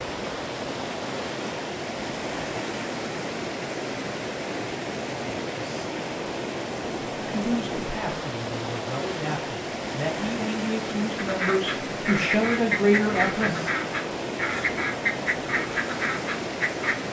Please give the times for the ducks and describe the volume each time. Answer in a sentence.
The ducks can be heard from 11.2 to 16.9 s, at a steady volume.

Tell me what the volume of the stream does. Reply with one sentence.
The loudness of the stream stays about the same.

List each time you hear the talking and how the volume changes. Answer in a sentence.
You can hear the talking from 7.2 to 13.6 s, getting louder.